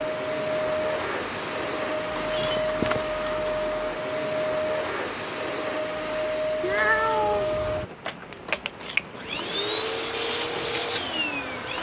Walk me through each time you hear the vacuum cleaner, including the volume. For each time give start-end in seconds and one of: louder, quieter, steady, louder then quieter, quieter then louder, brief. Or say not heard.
0.0-11.7 steady.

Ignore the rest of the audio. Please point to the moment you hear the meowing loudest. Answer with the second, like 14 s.
7 s.